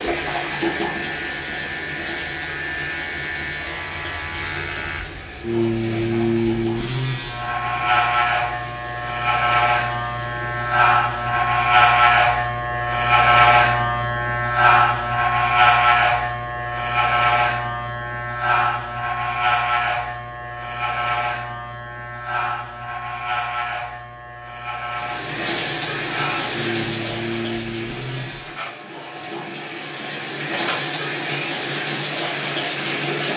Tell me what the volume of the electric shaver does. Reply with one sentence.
The volume of the electric shaver goes up, then down.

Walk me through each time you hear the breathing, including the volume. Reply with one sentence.
You can't hear the breathing here.